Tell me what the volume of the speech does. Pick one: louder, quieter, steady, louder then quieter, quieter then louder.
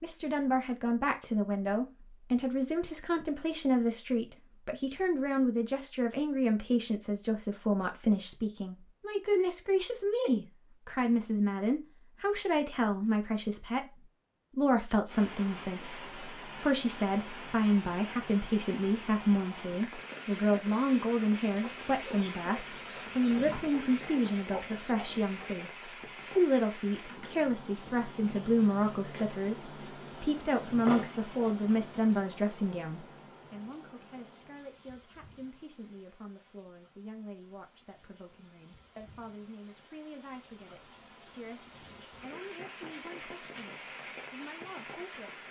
quieter.